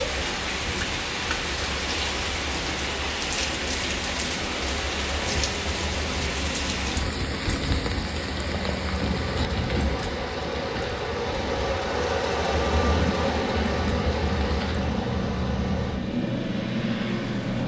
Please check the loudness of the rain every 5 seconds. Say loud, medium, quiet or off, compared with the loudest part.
loud, loud, medium, loud.